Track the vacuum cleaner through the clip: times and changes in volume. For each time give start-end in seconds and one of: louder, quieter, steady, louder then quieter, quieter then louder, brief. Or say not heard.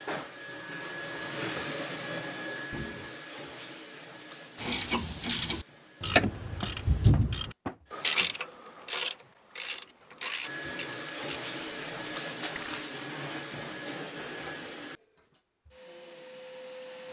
0.0-8.2 quieter
10.4-17.0 quieter.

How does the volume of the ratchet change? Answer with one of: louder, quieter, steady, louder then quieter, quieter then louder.
quieter.